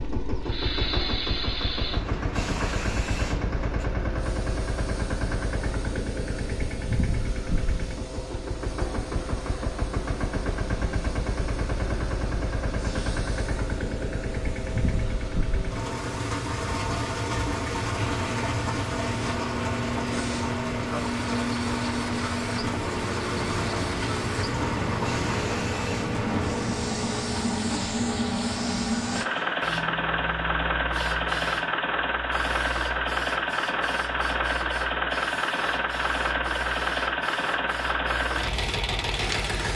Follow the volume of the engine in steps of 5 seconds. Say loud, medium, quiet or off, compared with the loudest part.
medium, medium, medium, loud, loud, loud, loud, loud.